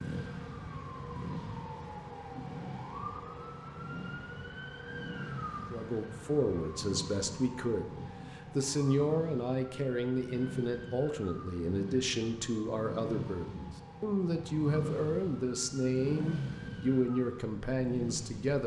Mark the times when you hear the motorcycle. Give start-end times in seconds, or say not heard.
0.0-18.6.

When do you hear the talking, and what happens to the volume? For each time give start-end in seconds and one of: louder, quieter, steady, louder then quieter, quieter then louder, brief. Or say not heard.
5.7-18.6 steady.